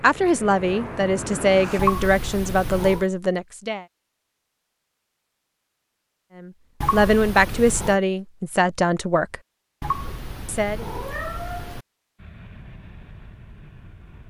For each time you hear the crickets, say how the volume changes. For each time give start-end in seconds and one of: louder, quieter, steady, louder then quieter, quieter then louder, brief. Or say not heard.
not heard.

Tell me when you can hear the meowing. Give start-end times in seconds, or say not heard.
1.8-3.0, 6.8-8.0, 9.8-11.8.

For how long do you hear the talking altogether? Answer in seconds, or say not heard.
7 s.